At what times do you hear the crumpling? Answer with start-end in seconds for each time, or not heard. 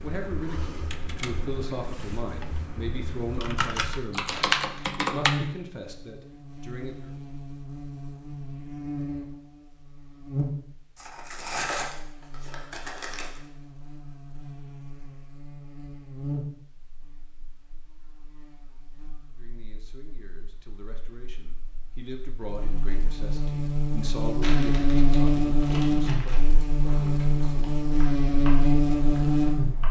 4.3-5.0, 10.9-13.4, 24.4-26.4.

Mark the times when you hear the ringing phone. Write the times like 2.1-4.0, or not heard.
not heard.